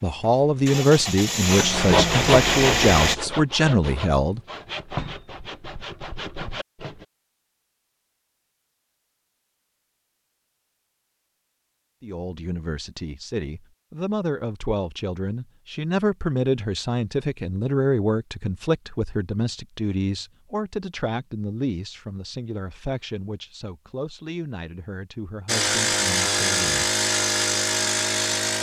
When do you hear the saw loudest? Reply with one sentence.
The loudest moment of the saw is at 2 seconds.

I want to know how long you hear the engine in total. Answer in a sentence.
The engine can be heard for 6 seconds in total.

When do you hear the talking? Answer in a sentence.
You can hear the talking from 0.0 to 4.4 s and from 12.0 to 26.9 s.